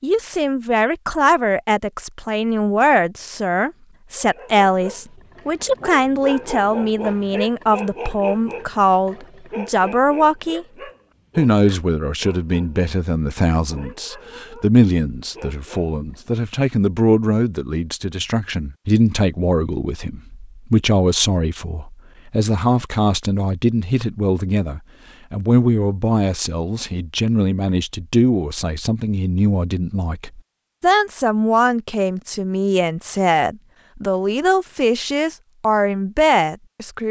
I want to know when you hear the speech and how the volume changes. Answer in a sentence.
The speech can be heard from 0.0 to 10.7 s, at a steady volume; and from 11.3 to 37.0 s, at a steady volume.